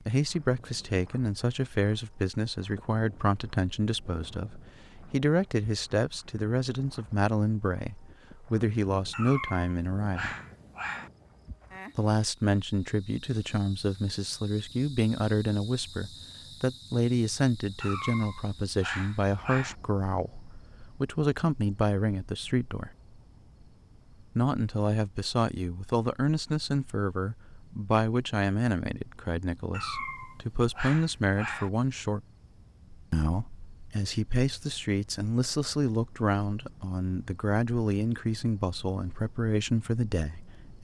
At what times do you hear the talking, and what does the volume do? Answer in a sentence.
The talking can be heard from 0.1 to 10.3 s, at a steady volume; from 11.9 to 22.9 s, at a steady volume; from 24.4 to 32.2 s, getting quieter then louder; and from 33.1 to 40.7 s, at a steady volume.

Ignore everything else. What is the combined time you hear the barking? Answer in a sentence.
The barking can be heard for 6 seconds in total.